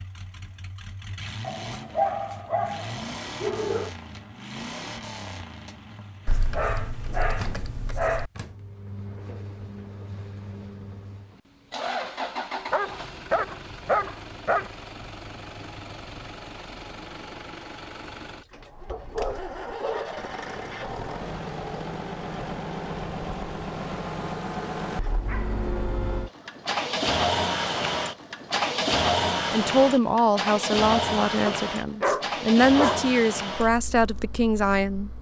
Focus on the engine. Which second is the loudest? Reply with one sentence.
The loudest moment of the engine is at 29 seconds.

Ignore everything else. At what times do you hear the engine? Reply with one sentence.
The engine can be heard from 0.0 to 35.1 s.